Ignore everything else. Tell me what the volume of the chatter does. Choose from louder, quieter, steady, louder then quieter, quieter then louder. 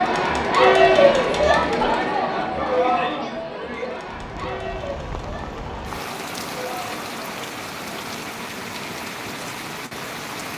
quieter.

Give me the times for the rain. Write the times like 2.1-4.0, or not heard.
4.0-10.5.